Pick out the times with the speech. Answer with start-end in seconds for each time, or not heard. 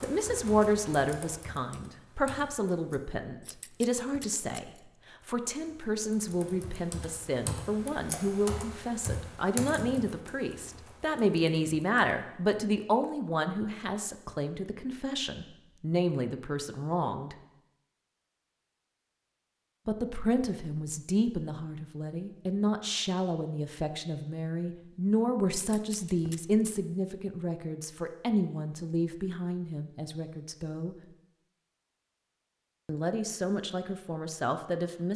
0.0-17.4, 19.9-30.9, 32.9-35.1.